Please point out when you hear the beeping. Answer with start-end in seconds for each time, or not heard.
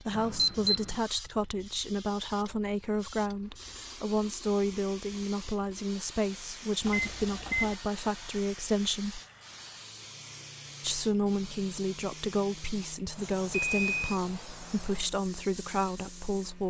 0.1-1.0, 6.8-7.8, 13.5-14.2.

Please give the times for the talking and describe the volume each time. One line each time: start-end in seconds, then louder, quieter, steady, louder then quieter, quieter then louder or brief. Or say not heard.
0.0-9.2 steady
10.8-16.6 steady.